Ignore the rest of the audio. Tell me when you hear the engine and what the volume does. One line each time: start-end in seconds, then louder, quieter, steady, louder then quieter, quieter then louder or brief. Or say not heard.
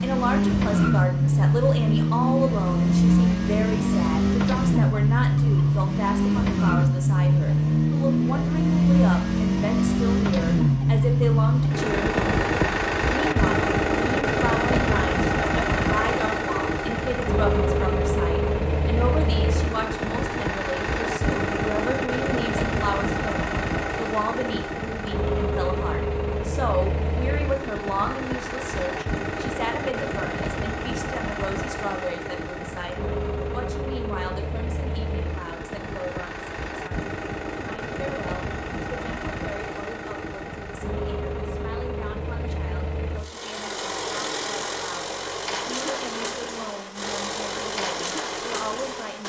0.0-49.2 quieter.